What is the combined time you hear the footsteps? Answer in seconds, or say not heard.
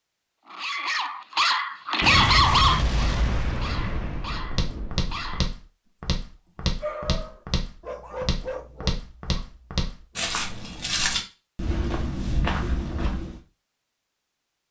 9 s.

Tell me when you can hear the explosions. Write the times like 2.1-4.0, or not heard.
2.0-5.5.